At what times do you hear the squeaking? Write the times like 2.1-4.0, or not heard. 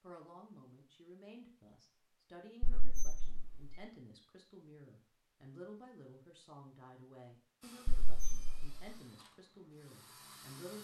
2.6-3.8, 7.8-8.8.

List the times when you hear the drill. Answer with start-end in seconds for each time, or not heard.
7.6-10.7.